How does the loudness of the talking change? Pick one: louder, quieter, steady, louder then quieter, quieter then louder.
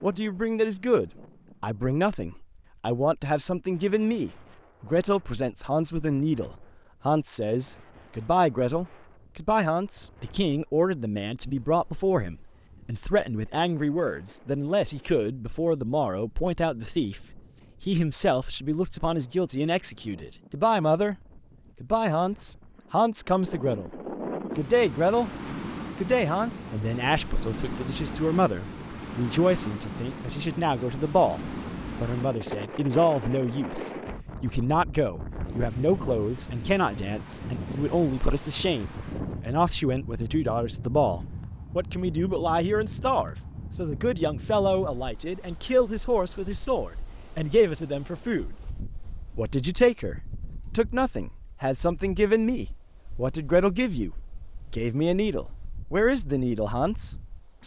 steady.